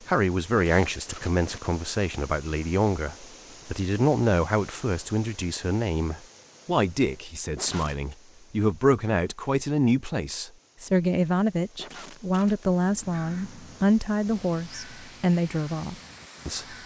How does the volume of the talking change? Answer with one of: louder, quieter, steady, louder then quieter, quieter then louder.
steady.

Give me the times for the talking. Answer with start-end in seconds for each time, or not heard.
0.1-16.8.